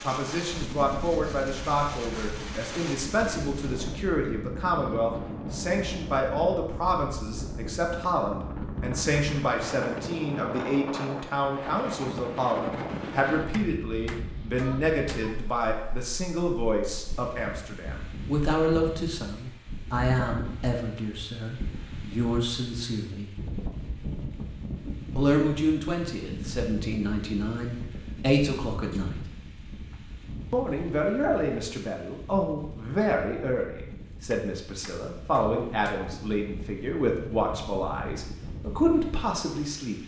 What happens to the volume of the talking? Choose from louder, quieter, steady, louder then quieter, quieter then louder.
steady.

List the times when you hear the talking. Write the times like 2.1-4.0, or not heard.
0.0-23.3, 25.1-29.2, 30.5-40.0.